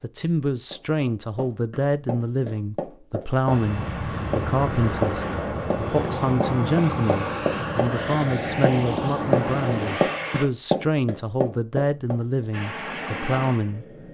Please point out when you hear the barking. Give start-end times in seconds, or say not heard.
not heard.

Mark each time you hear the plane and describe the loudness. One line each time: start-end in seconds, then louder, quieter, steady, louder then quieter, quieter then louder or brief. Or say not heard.
3.5-10.4 steady
12.5-14.1 brief.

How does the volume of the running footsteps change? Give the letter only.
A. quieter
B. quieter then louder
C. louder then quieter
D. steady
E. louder
E.